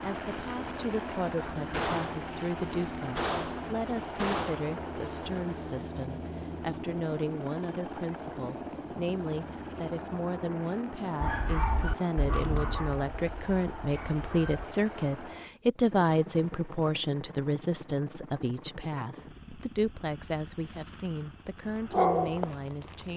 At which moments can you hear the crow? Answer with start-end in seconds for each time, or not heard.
not heard.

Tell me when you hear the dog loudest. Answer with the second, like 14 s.
22 s.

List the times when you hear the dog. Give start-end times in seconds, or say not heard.
11.2-14.7, 21.6-23.1.